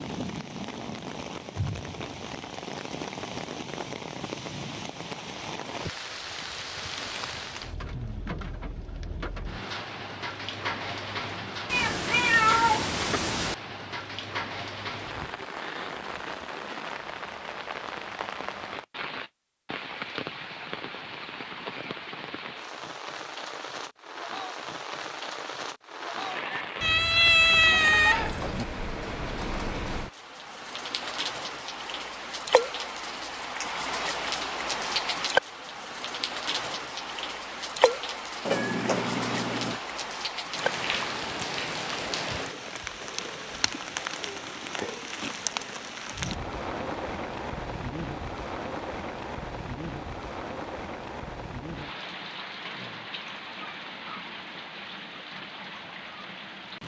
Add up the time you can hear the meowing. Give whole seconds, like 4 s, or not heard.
5 s.